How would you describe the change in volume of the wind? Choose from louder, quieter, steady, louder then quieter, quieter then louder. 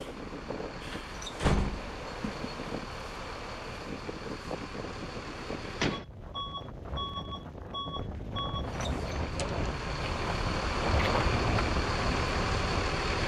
louder.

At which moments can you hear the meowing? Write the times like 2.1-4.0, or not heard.
not heard.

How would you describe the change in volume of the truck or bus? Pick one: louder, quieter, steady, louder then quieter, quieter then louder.
louder.